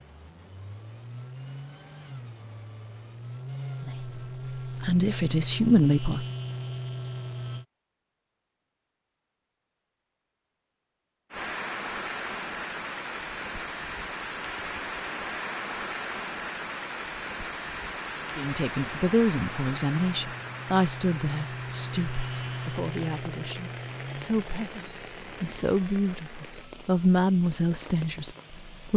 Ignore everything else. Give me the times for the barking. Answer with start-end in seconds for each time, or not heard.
not heard.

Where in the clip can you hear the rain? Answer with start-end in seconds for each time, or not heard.
11.3-28.9.